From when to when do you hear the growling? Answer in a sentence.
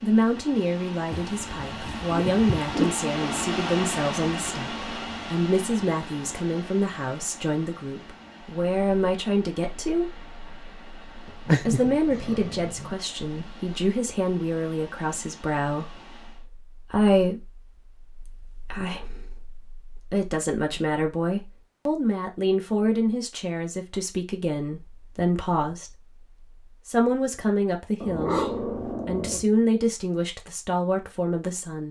The growling can be heard from 1.1 to 2.9 s, from 11.4 to 12.9 s and from 28.0 to 29.4 s.